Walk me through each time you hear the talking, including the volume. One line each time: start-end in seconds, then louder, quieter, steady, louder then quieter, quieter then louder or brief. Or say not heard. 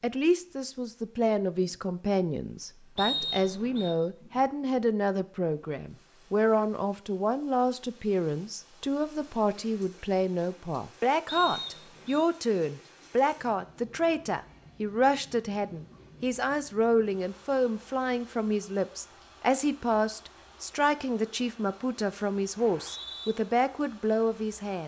0.0-24.8 steady.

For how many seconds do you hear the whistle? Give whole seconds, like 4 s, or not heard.
3 s.